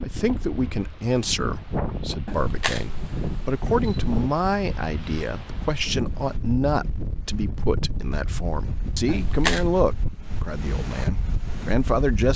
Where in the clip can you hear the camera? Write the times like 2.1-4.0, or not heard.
2.2-4.2, 9.1-9.7.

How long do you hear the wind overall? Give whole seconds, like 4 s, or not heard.
12 s.